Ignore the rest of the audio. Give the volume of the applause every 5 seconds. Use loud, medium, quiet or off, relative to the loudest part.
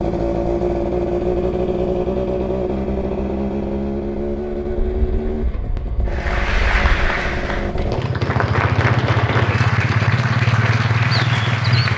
off, loud, loud.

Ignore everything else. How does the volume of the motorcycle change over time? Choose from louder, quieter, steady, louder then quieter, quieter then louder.
quieter then louder.